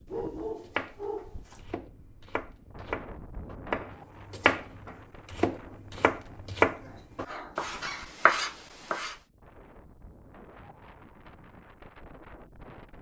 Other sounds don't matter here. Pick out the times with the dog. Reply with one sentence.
You can hear the dog from 0.1 to 1.6 s and from 6.8 to 8.2 s.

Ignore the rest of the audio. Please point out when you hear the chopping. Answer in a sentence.
You can hear the chopping from 0.6 to 9.2 s.